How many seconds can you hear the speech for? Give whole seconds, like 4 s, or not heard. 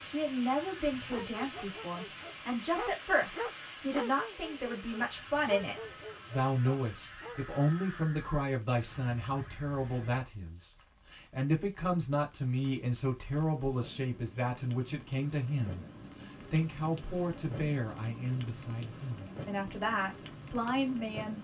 21 s.